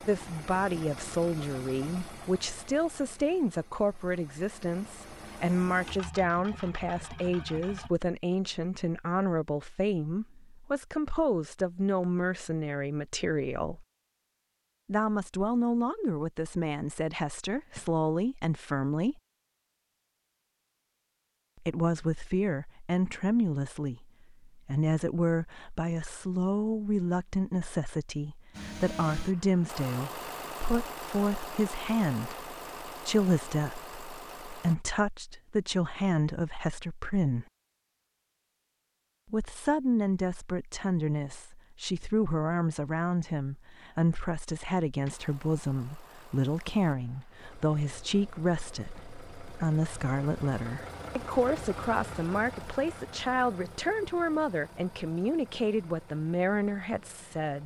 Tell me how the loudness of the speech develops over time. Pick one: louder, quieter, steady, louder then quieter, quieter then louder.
steady.